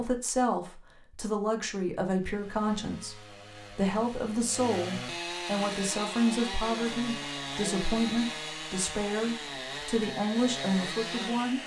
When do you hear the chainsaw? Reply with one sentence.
The chainsaw can be heard from 2.1 to 11.6 s.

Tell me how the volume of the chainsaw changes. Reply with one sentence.
The loudness of the chainsaw goes up.